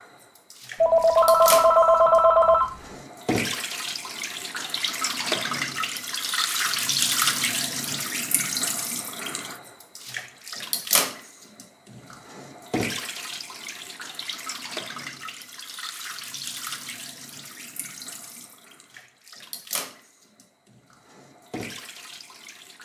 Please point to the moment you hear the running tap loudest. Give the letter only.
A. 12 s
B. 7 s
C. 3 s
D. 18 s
B.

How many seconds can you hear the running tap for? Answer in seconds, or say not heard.
23 s.